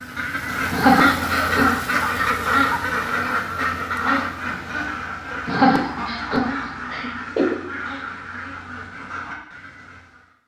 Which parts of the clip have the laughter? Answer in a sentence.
You can hear the laughter from 0.7 to 2.2 s and from 5.5 to 7.5 s.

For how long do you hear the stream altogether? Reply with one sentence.
You can't hear the stream here.